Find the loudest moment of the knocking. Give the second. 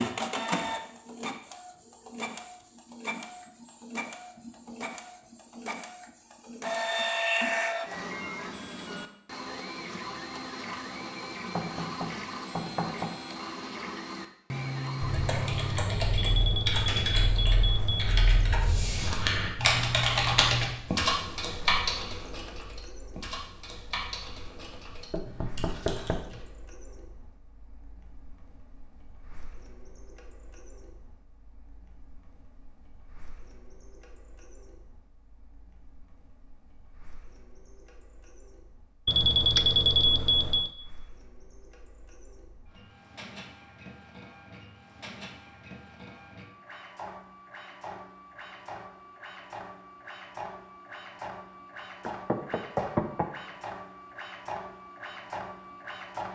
53 s.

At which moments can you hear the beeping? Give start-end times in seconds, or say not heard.
16.1-18.1, 39.0-40.7.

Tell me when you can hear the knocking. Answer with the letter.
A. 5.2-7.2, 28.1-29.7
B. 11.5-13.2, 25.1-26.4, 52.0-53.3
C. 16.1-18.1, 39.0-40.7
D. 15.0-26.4
B.